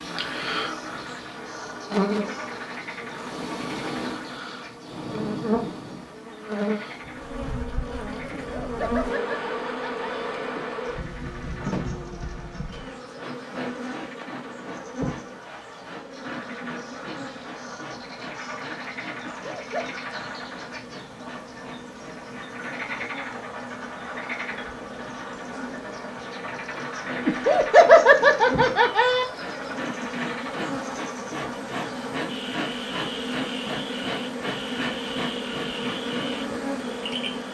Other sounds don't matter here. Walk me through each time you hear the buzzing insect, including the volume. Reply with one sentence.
You can hear the buzzing insect from 0.0 to 37.4 s, getting quieter then louder.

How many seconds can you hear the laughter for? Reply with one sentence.
The laughter can be heard for 4 seconds in total.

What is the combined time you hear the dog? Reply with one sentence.
The dog can't be heard in this clip.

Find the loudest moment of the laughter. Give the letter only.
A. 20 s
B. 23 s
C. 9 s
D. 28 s
D.